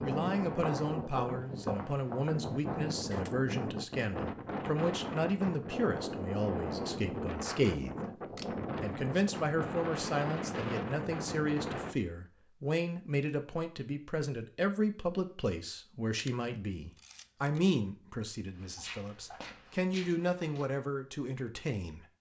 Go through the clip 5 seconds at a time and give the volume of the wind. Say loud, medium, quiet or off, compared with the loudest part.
loud, loud, loud, off, off.